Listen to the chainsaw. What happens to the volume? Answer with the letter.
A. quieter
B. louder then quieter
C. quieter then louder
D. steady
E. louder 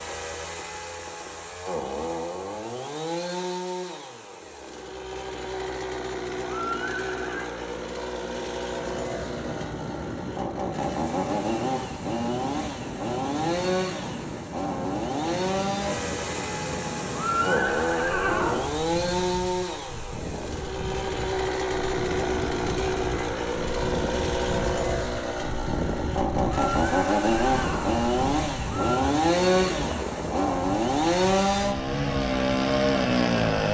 E.